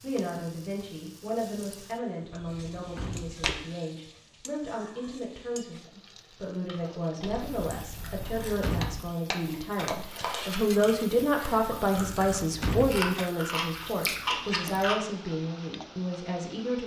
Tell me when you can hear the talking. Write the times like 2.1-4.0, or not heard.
0.0-16.8.